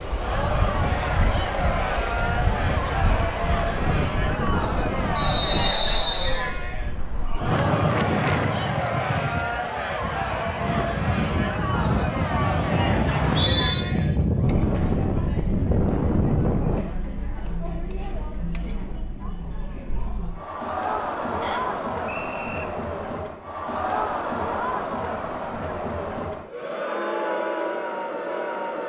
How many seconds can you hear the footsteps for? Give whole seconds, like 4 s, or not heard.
not heard.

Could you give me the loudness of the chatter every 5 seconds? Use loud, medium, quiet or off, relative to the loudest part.
loud, loud, loud, medium, loud, loud.